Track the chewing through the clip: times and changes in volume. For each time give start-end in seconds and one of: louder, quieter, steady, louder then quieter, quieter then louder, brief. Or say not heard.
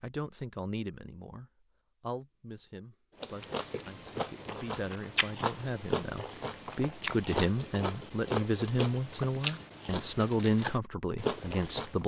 3.2-12.0 steady.